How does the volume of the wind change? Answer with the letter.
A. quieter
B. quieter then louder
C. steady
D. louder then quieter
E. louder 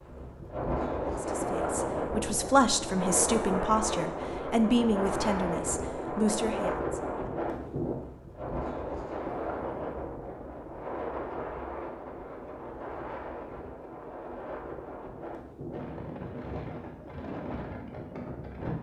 A.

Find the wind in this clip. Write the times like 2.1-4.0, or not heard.
0.0-18.7.